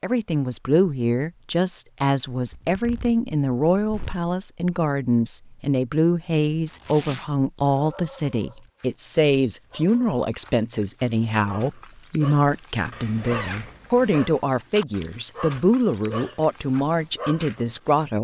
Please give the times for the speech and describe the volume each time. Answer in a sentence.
You can hear the speech from 0.0 to 18.1 s, at a steady volume.